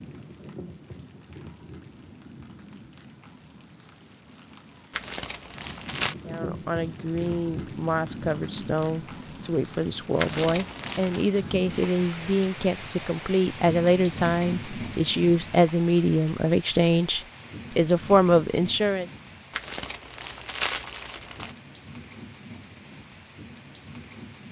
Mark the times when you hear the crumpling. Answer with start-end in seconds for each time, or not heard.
4.9-6.2, 10.2-11.2, 19.5-21.6.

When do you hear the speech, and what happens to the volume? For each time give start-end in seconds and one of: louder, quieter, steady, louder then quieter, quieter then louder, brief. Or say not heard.
6.2-19.1 louder.